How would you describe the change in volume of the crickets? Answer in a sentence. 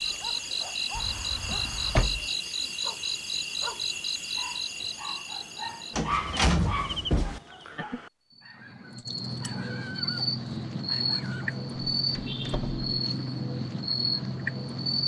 The loudness of the crickets goes down, then up.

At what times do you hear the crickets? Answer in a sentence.
You can hear the crickets from 0.0 to 15.0 s.